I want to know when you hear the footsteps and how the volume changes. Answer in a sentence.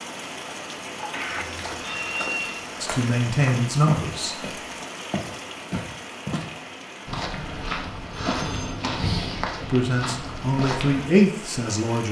The footsteps can be heard from 1.2 to 11.1 s, getting louder.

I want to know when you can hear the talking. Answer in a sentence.
You can hear the talking from 2.8 to 4.5 s and from 9.7 to 12.0 s.